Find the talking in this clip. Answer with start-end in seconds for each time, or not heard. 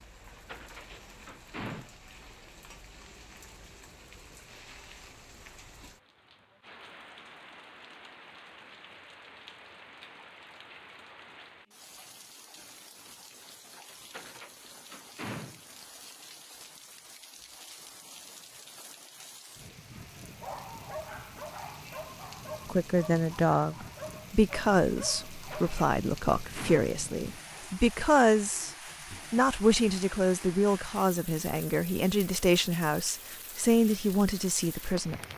22.6-35.1.